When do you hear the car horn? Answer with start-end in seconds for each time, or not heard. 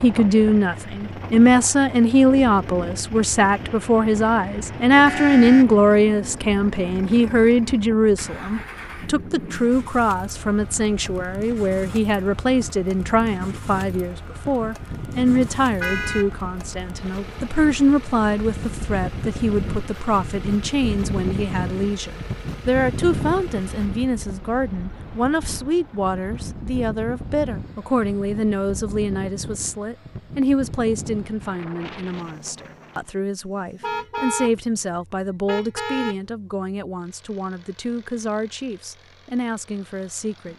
5.0-5.7, 15.8-16.3, 33.8-34.5, 35.5-36.1.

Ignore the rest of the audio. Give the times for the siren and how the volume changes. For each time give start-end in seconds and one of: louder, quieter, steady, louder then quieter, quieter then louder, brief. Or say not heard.
not heard.